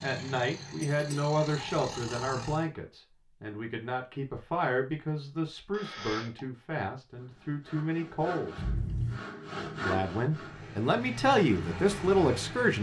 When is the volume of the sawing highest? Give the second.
10 s.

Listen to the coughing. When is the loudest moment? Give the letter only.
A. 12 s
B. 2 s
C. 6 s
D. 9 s
D.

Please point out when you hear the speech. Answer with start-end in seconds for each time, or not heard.
0.0-8.6, 9.8-12.7.